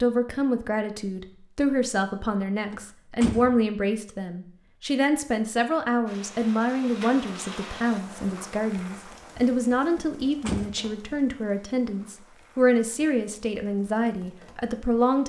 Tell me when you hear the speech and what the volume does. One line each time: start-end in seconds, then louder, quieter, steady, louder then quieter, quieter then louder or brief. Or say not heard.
0.0-15.2 steady.